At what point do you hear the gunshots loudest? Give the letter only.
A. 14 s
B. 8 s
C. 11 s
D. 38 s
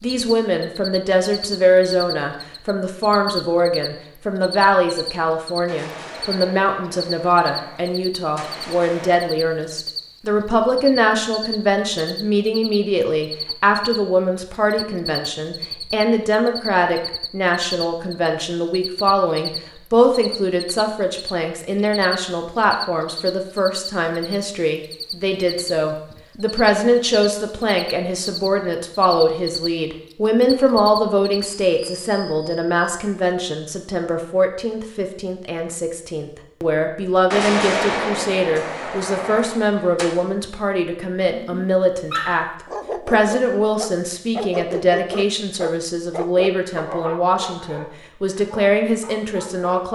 D.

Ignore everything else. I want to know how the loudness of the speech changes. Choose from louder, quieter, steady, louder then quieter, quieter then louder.
steady.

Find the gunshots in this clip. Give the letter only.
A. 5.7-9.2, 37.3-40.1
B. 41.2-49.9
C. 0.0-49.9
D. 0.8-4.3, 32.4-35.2
A.